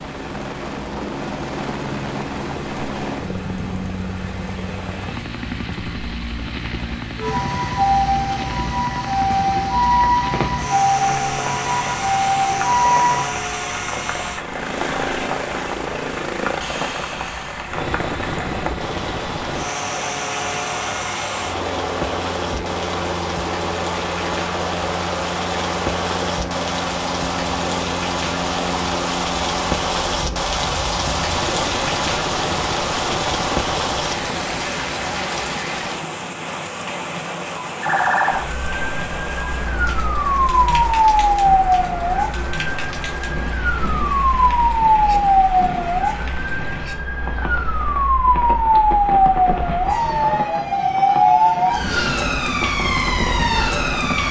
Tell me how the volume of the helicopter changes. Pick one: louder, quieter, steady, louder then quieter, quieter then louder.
steady.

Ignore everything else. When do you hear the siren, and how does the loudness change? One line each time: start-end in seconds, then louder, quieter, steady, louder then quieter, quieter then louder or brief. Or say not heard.
7.2-13.3 steady
37.8-54.2 steady.